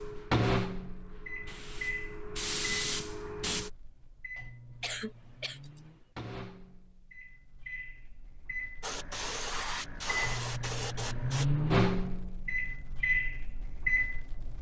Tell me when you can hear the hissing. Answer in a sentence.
You can hear the hissing from 0.0 to 3.7 s and from 8.8 to 11.4 s.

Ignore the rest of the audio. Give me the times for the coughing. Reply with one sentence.
The coughing can be heard from 4.8 to 5.8 s.